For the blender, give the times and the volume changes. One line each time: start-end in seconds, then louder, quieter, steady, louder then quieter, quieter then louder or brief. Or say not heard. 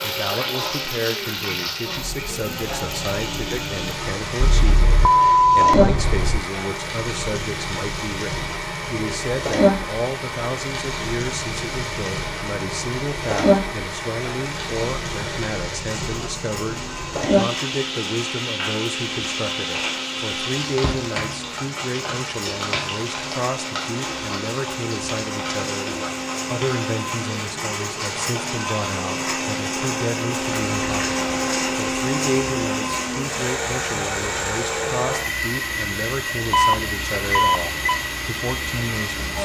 0.0-39.4 louder.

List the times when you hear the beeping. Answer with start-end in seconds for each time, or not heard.
4.4-6.4, 36.5-38.0.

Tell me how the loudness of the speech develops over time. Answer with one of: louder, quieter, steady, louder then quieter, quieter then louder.
steady.